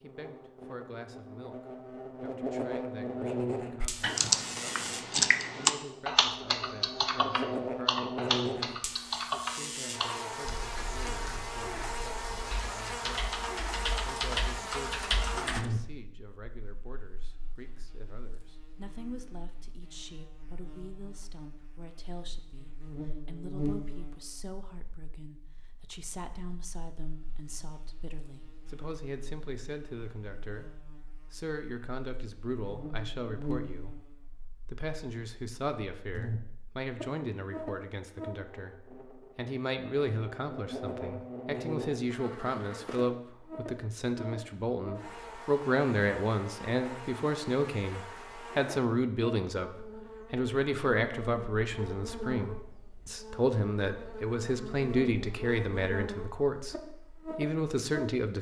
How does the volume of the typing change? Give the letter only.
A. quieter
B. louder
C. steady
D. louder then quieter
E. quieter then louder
E.